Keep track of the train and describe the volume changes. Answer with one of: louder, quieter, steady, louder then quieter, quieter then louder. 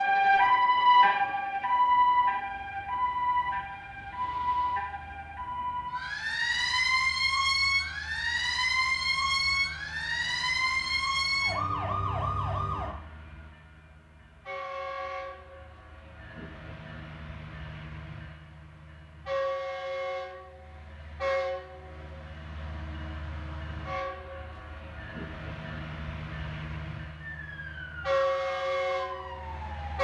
louder.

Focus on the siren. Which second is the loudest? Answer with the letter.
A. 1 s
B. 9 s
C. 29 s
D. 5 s
A.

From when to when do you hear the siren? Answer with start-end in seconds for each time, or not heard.
0.0-12.9, 27.2-30.0.